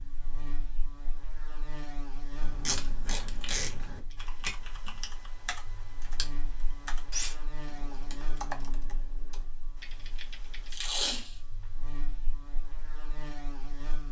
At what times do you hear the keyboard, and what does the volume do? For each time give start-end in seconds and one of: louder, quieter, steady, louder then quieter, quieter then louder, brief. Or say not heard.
2.4-11.2 louder then quieter.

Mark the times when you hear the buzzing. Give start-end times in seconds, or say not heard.
0.0-14.0.